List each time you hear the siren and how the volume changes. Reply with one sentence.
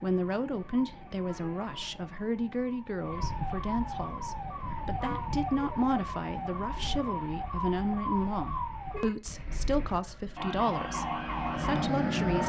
The siren can be heard from 0.0 to 12.4 s, getting louder.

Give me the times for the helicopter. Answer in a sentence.
The helicopter can be heard from 10.2 to 12.4 s.